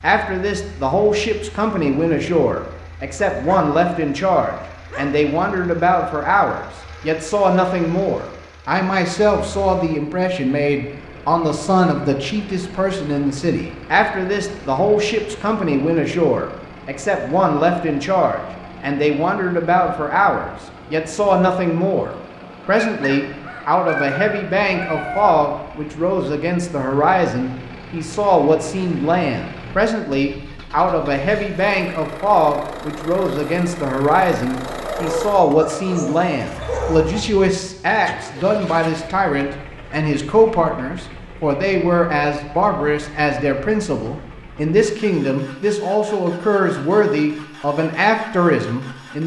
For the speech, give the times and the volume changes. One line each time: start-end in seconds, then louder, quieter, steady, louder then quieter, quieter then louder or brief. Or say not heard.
0.0-49.2 steady.